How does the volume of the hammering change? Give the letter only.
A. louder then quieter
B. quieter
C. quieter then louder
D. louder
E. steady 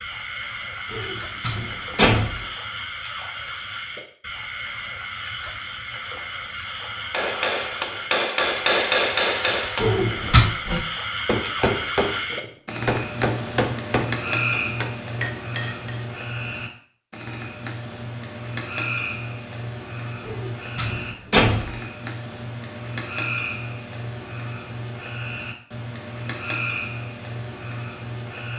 B.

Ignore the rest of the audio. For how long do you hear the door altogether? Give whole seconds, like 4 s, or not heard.
4 s.